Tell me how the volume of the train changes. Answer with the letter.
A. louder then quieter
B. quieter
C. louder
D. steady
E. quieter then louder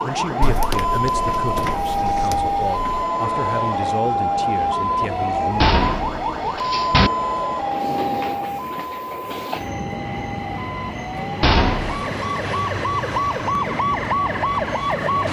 D.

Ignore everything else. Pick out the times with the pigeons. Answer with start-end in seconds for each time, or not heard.
not heard.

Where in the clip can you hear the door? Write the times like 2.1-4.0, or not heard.
0.4-3.0, 5.6-7.1, 11.4-12.0.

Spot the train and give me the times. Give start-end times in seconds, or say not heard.
0.0-15.2.